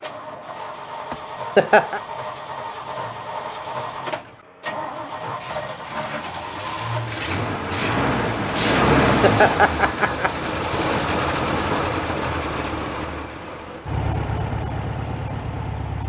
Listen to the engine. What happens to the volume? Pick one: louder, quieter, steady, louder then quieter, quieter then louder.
louder then quieter.